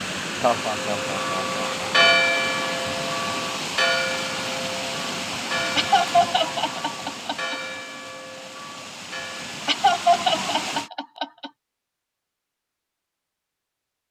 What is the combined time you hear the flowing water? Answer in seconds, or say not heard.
11 s.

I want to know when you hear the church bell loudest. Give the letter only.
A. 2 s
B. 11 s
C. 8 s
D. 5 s
A.